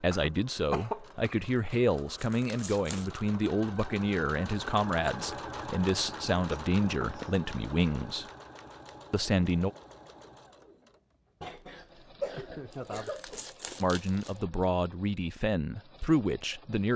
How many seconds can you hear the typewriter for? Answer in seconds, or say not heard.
not heard.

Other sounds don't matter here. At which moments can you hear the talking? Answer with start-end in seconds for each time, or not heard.
0.0-8.2, 9.1-9.7, 13.8-16.9.